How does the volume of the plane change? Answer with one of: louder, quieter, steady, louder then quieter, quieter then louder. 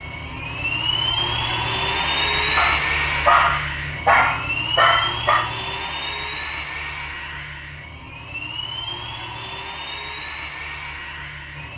quieter.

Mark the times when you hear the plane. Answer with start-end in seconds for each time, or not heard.
0.0-11.7.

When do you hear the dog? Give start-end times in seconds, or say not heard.
2.5-5.5.